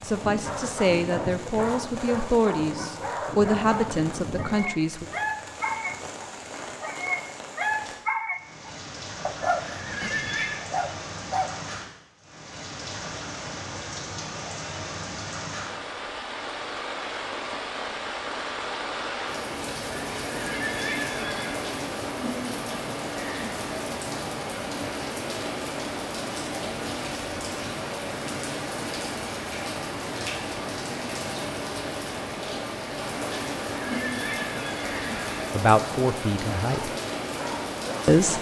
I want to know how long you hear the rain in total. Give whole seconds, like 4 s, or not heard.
38 s.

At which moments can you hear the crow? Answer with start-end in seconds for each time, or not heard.
not heard.